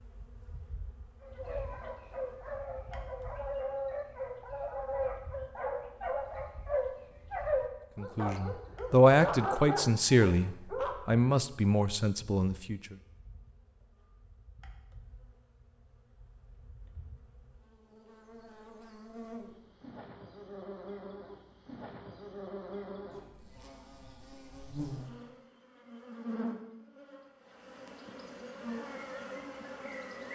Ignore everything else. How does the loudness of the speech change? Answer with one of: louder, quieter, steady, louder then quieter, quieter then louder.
quieter.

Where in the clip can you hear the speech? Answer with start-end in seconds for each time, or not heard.
8.0-12.9.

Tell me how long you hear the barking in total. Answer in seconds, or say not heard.
10 s.